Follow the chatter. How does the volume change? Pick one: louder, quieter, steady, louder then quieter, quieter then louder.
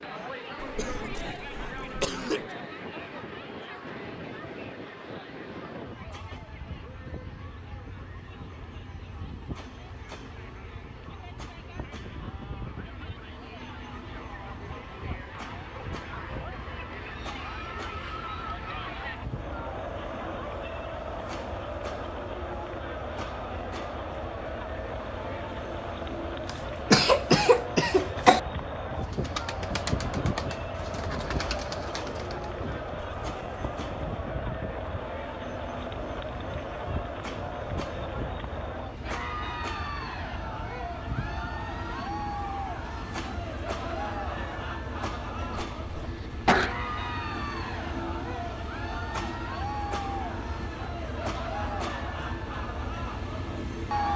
louder.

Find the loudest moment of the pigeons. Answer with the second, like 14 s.
30 s.